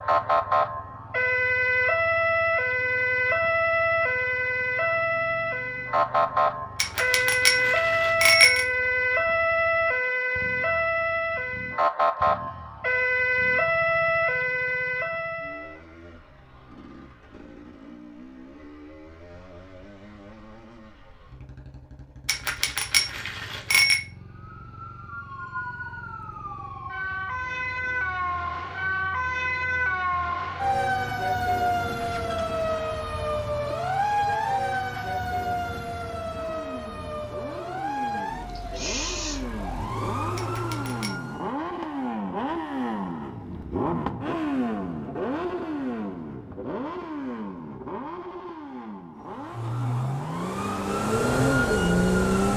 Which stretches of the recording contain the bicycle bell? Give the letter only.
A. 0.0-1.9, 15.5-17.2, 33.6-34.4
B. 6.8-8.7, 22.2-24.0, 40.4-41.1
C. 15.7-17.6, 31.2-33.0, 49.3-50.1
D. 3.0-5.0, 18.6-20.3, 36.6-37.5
B.